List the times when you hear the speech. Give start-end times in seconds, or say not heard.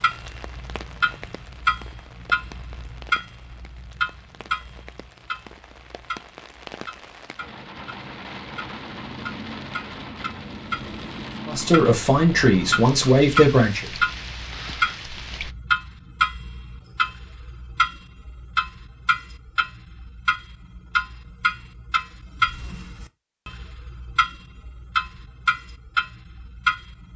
11.4-13.8.